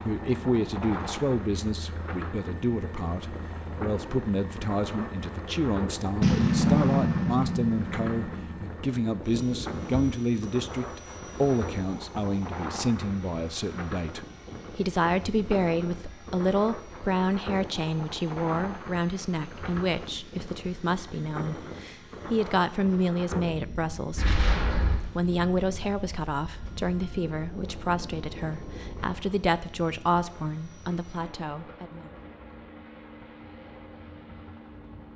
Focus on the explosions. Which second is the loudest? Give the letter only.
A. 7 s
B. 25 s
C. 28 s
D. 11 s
A.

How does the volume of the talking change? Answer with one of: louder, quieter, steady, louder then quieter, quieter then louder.
steady.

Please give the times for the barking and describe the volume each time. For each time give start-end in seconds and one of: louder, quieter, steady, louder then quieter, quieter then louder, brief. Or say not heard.
not heard.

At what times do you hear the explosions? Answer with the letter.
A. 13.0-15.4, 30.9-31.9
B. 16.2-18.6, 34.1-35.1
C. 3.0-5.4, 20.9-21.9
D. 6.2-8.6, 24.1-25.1
D.